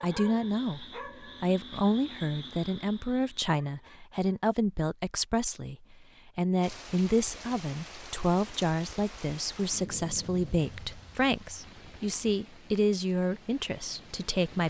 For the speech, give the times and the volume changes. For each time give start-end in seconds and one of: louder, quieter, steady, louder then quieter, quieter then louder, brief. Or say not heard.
0.0-14.6 steady.